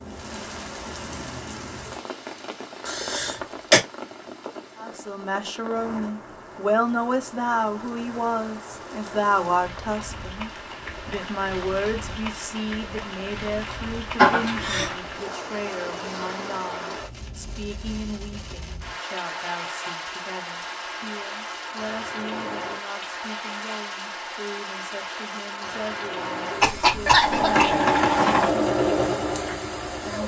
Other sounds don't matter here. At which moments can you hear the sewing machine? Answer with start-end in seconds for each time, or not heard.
27.1-30.2.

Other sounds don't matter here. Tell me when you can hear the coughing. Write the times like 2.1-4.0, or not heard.
2.9-3.8, 14.2-14.9, 26.6-27.8.